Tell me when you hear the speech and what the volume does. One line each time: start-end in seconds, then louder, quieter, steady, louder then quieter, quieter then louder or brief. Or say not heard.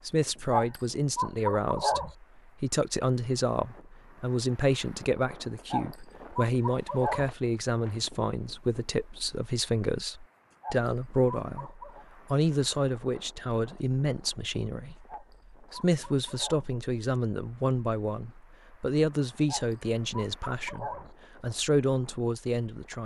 0.1-23.0 steady.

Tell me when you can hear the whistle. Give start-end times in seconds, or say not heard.
not heard.